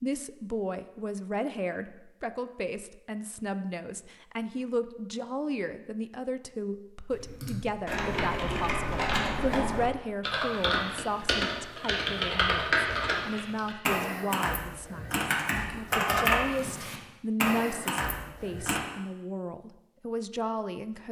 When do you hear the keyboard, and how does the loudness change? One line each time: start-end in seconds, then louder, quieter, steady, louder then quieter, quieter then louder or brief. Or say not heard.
7.1-18.8 steady.